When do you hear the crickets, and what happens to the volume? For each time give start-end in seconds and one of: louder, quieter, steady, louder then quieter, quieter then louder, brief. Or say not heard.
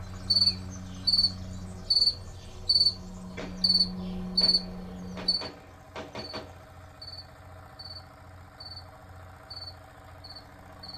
0.0-10.9 quieter.